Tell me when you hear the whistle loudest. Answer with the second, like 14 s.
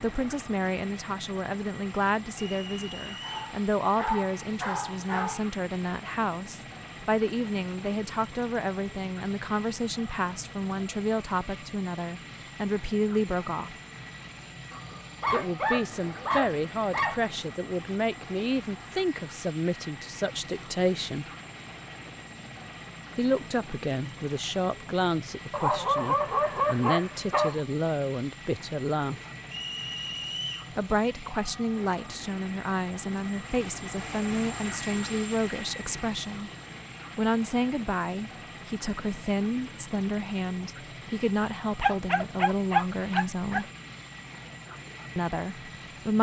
30 s.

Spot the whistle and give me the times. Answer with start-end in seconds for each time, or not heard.
2.4-3.5, 29.5-30.7.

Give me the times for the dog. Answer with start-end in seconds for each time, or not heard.
3.2-5.4, 14.7-17.4, 25.5-27.6, 41.8-43.6.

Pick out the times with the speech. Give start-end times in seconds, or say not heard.
0.0-13.8, 15.3-21.2, 23.1-29.2, 30.8-36.5, 37.1-43.6, 45.1-46.1.